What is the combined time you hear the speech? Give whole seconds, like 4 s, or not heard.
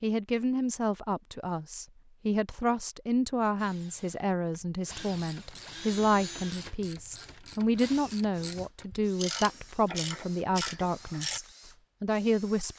13 s.